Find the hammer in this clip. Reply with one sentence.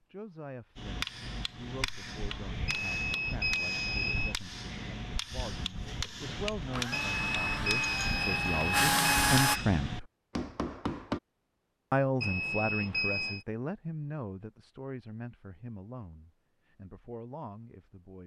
The hammer can be heard from 0.8 to 11.2 s.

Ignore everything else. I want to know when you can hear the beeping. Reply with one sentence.
The beeping can be heard from 2.6 to 4.3 s, from 6.9 to 9.7 s and from 12.2 to 13.4 s.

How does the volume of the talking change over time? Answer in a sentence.
The volume of the talking goes up, then down.